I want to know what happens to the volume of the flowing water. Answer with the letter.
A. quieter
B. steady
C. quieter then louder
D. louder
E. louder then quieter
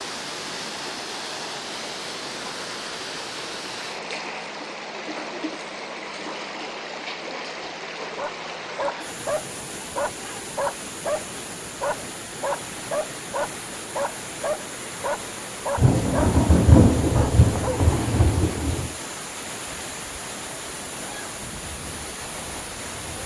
B.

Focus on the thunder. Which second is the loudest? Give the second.
17 s.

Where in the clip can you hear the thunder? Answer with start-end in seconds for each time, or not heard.
15.8-18.9.